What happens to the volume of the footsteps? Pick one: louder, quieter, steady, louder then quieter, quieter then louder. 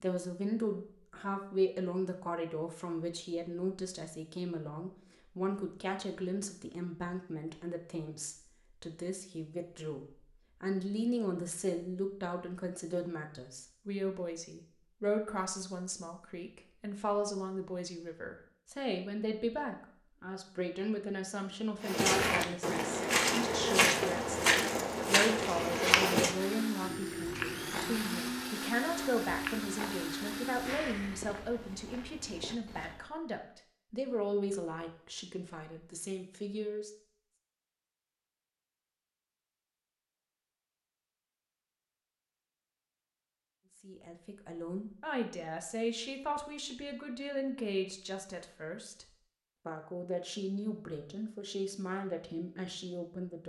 quieter.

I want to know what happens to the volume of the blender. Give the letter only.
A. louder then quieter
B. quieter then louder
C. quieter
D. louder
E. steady
E.